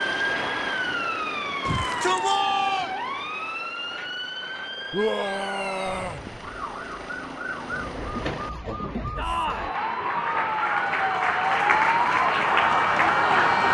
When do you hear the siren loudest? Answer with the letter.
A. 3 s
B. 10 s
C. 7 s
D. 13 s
D.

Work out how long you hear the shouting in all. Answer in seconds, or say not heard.
3 s.